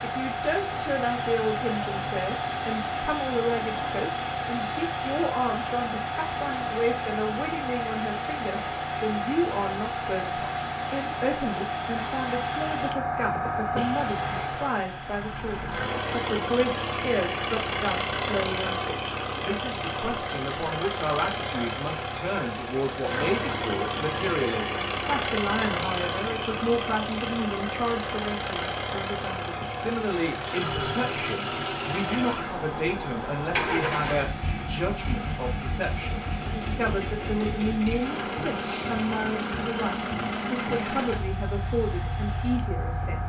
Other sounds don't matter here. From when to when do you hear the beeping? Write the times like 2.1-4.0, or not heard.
not heard.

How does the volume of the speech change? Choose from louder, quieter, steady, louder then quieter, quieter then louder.
steady.